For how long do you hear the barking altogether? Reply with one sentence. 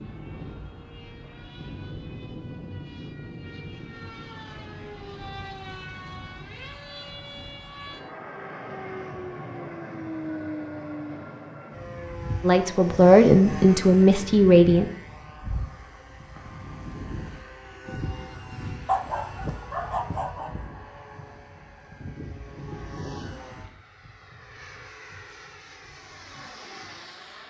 The barking can be heard for 2 seconds in total.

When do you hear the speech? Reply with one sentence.
The speech can be heard from 12.4 to 14.9 s.